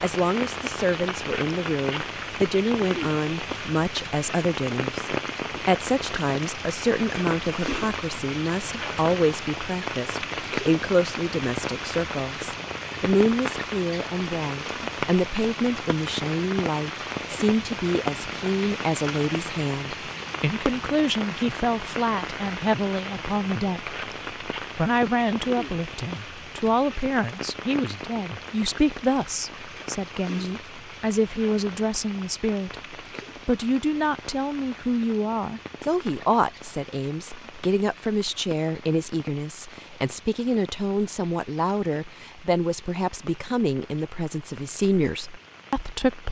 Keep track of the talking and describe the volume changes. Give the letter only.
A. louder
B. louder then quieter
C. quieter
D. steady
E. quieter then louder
D.